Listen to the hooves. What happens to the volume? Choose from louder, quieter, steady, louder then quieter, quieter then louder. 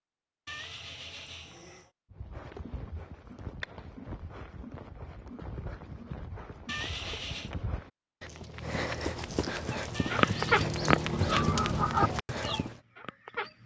louder.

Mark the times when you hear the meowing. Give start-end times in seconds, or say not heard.
0.5-1.9, 6.7-7.5, 9.9-10.6.